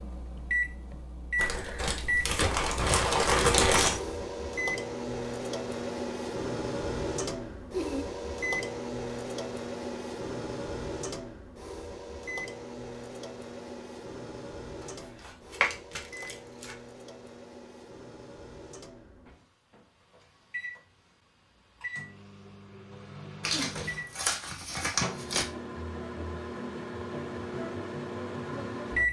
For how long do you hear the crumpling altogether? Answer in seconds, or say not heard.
7 s.